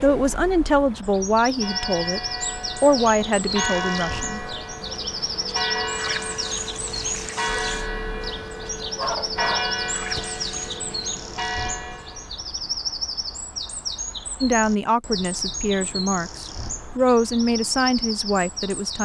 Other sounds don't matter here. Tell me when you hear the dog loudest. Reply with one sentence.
The volume of the dog peaks at 9 seconds.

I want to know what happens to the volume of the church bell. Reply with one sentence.
The loudness of the church bell stays about the same.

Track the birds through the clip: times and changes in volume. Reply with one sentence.
The birds can be heard from 0.0 to 18.9 s, at a steady volume.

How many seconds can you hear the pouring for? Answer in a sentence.
You can hear the pouring for 3 seconds altogether.